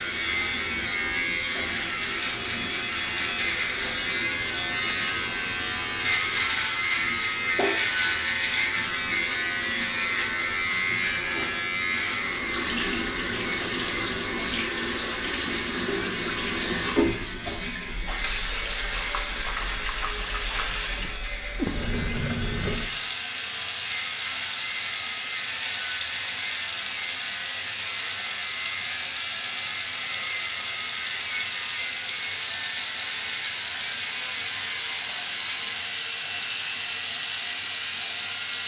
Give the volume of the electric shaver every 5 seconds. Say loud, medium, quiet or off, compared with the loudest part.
loud, loud, loud, medium, medium, medium, medium, medium.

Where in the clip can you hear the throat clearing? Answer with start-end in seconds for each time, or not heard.
not heard.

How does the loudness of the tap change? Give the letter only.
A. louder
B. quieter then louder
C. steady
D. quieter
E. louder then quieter
A.